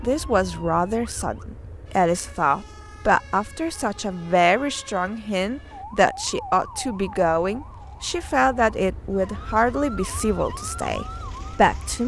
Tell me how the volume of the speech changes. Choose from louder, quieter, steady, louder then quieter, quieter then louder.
steady.